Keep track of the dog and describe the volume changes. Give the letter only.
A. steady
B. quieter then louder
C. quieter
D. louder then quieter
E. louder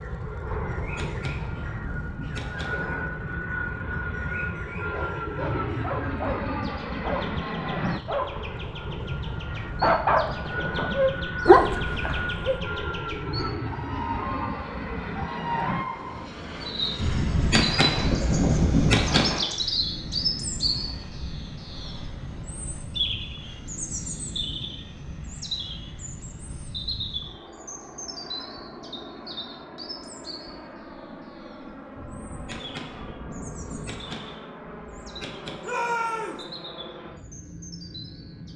E.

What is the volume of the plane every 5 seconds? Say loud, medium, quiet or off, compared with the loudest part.
loud, loud, loud, loud, medium, medium, medium, medium.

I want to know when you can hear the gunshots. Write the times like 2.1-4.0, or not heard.
0.7-2.9, 17.0-19.4, 31.9-35.8.